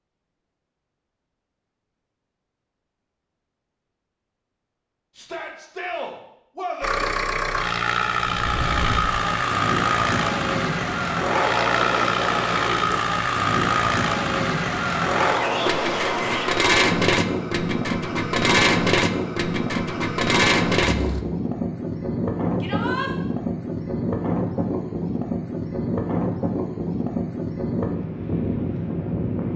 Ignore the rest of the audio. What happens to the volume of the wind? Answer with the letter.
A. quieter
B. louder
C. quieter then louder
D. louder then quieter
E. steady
E.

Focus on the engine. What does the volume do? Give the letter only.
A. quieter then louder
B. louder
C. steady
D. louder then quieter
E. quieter
C.